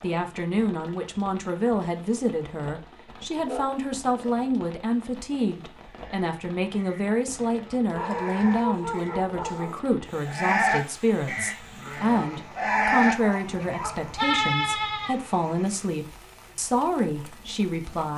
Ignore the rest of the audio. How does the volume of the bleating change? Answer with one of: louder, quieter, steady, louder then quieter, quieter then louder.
louder.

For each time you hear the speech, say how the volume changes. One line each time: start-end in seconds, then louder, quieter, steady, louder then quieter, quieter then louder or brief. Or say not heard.
0.0-18.1 steady.